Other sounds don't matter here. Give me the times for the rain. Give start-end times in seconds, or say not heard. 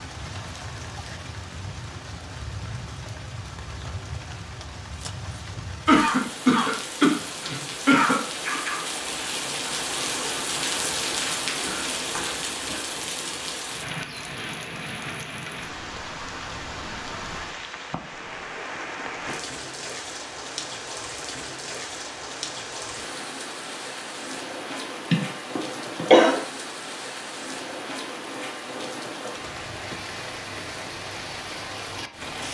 0.0-32.4.